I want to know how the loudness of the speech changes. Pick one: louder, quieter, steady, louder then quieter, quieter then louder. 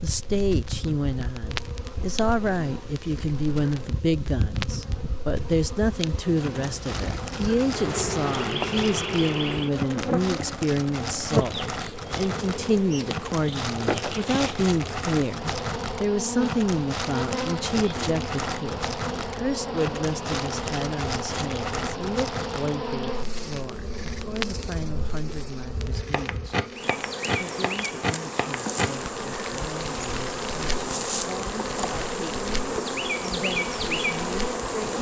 quieter.